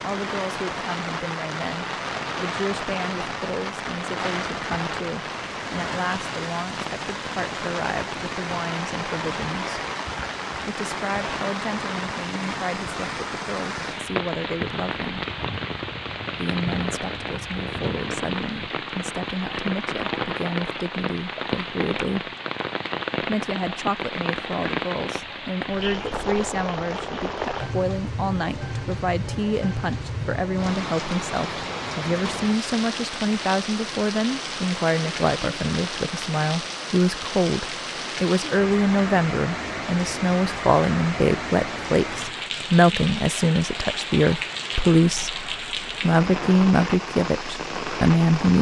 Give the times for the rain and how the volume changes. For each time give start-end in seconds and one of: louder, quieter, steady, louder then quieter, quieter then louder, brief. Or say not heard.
0.0-48.5 steady.